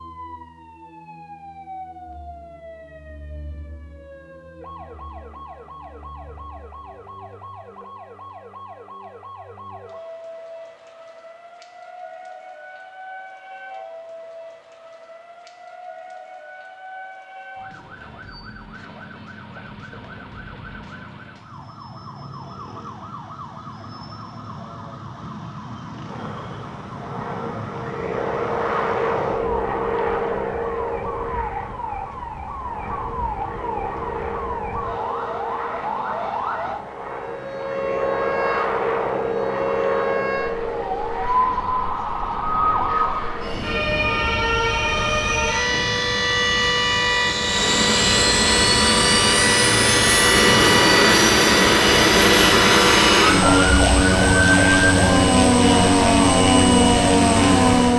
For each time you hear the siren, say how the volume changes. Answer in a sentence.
The siren can be heard from 0.0 to 57.9 s, getting louder.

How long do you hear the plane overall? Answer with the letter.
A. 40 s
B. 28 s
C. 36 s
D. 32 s
D.